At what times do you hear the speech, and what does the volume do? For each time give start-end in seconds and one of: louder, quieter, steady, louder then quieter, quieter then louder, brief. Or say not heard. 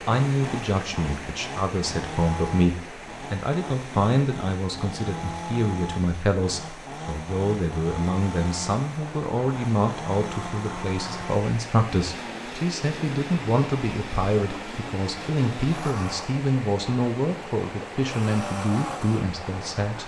0.1-20.0 steady.